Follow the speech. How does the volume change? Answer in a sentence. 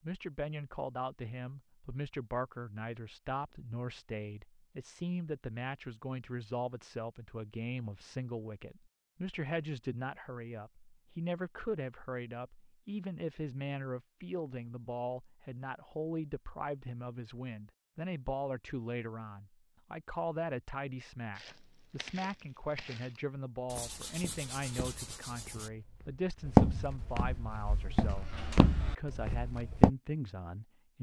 The loudness of the speech stays about the same.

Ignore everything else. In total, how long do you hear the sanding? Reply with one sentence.
You can hear the sanding for 2 seconds altogether.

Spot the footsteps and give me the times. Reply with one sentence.
The footsteps can be heard from 21.4 to 29.9 s.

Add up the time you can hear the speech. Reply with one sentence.
The speech can be heard for 31 seconds in total.